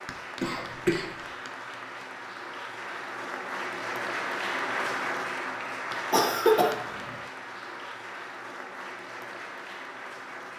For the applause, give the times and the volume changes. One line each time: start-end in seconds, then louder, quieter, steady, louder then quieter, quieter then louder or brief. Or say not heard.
0.0-10.5 louder then quieter.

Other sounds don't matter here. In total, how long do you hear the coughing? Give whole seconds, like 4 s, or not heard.
2 s.